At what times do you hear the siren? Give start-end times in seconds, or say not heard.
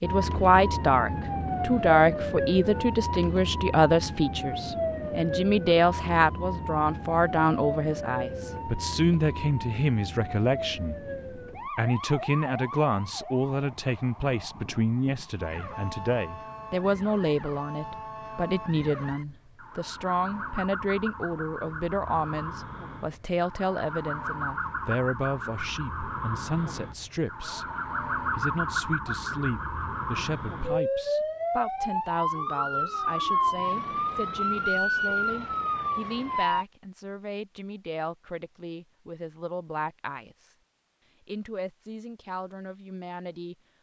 0.0-36.6.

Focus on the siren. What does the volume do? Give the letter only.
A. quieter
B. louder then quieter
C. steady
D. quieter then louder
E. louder
D.